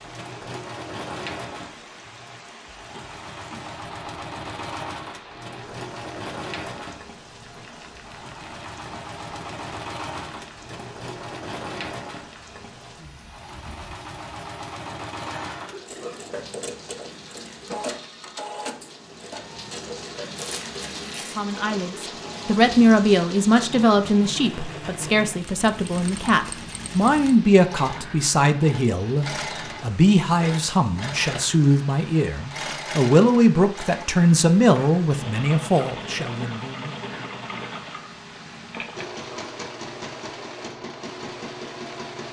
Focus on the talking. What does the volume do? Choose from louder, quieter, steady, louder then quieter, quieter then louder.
steady.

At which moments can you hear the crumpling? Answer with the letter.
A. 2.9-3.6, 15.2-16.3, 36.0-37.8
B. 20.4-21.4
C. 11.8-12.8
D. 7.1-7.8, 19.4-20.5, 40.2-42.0
B.